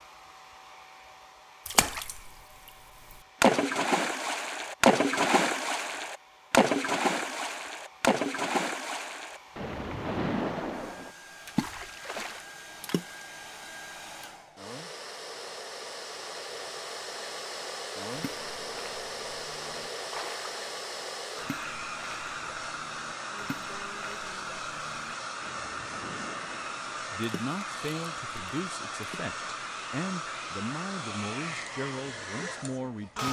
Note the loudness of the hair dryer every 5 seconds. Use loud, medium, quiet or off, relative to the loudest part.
quiet, quiet, medium, loud, loud, loud, loud.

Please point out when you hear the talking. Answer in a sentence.
You can hear the talking from 27.1 to 33.2 s.